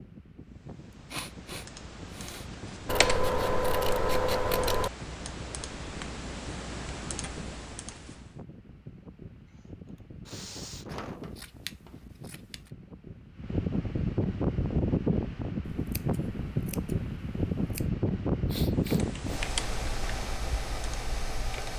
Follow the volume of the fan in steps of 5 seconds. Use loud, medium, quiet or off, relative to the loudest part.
quiet, quiet, loud, loud, medium.